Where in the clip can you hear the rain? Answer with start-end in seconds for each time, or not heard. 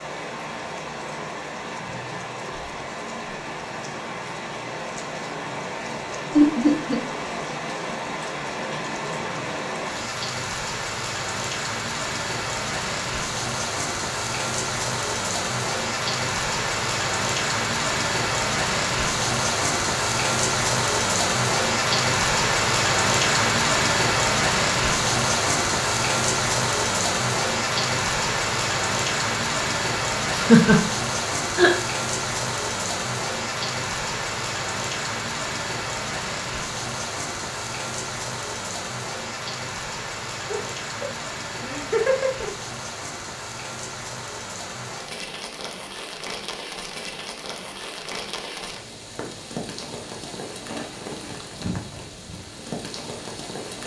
0.0-53.8.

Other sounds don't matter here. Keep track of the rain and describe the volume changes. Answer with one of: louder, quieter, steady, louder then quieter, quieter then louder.
louder then quieter.